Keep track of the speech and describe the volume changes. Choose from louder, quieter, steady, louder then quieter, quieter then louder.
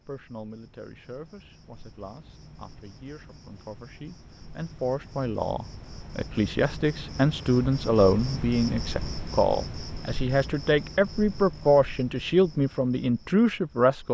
louder.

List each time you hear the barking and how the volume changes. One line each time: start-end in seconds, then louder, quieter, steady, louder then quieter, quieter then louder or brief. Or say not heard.
not heard.